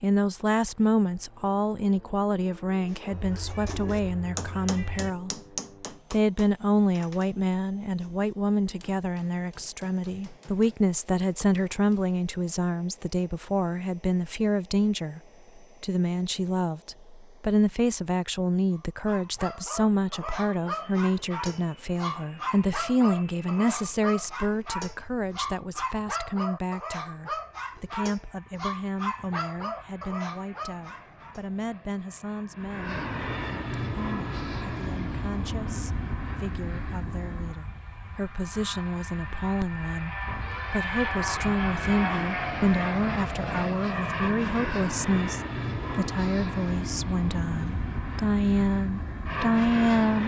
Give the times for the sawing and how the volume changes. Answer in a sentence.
The sawing can't be heard in this clip.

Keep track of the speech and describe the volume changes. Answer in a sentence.
The volume of the speech goes down, then up.